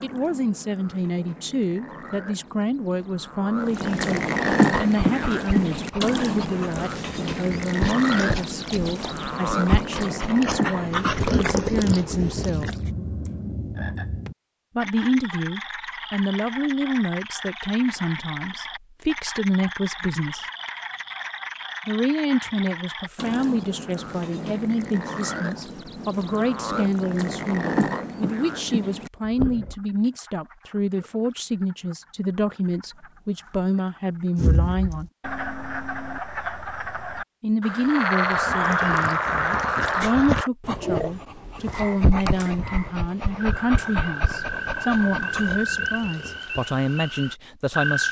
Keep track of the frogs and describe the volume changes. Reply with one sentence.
The loudness of the frogs goes down, then up.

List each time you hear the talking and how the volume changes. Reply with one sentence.
The talking can be heard from 0.0 to 12.7 s, at a steady volume; from 14.8 to 20.4 s, getting quieter then louder; from 21.9 to 35.1 s, at a steady volume; and from 37.4 to 48.0 s, at a steady volume.